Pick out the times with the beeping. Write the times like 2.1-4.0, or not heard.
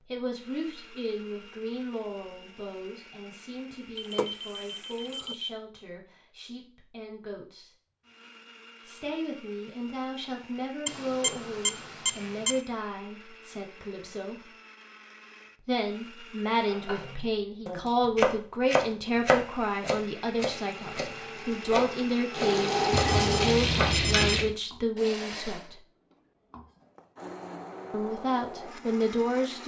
4.0-5.5, 10.8-12.6, 22.9-24.6.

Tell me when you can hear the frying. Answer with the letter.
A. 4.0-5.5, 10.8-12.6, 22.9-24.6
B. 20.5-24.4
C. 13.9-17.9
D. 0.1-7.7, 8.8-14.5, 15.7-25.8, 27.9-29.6
B.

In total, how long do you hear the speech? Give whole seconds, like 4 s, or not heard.
25 s.